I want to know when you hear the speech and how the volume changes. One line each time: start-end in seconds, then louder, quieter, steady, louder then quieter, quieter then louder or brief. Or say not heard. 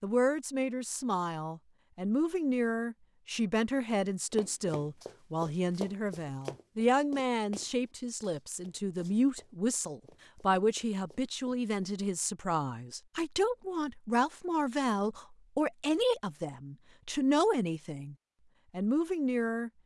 0.0-19.7 steady.